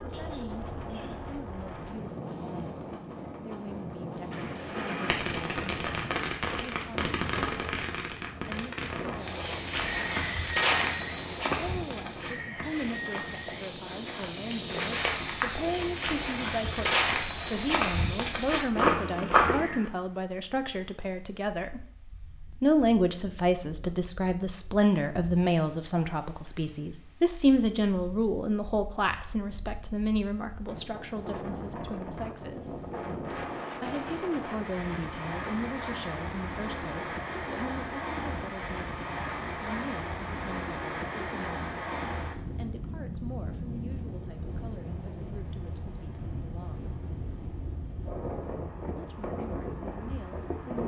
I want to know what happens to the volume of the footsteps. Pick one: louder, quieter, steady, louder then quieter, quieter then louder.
quieter then louder.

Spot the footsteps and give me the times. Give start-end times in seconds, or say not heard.
9.1-19.9.